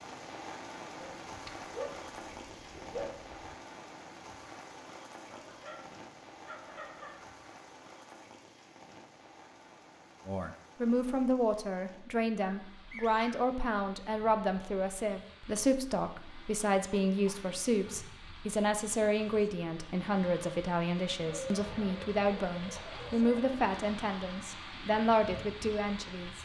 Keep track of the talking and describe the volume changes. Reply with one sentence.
The volume of the talking stays about the same.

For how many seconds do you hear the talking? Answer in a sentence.
You can hear the talking for 16 seconds altogether.